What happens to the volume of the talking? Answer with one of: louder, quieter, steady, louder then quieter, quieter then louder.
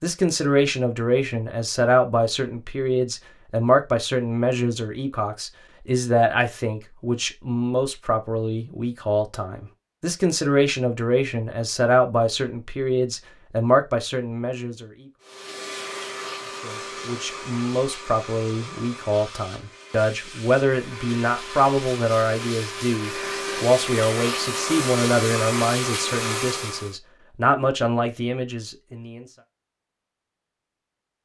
steady.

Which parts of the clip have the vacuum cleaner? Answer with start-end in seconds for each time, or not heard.
15.2-26.9.